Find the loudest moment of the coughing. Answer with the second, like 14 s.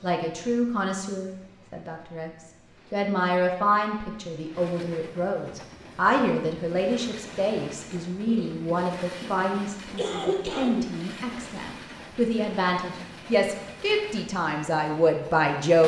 10 s.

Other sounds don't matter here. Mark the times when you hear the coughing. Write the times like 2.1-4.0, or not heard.
8.2-10.8.